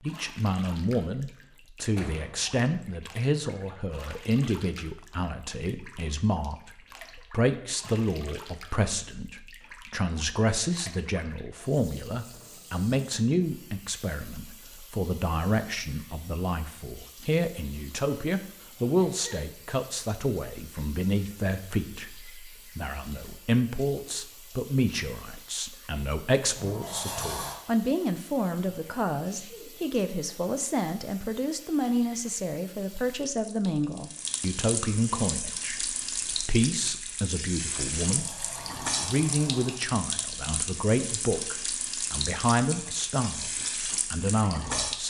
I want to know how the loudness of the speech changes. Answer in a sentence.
The volume of the speech stays about the same.